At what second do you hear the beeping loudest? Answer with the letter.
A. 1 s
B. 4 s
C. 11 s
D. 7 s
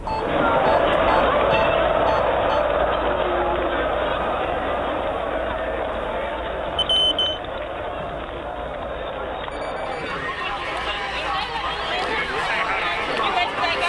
D.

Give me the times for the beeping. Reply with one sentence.
The beeping can be heard from 0.1 to 2.6 s, from 6.8 to 7.4 s and from 9.5 to 10.2 s.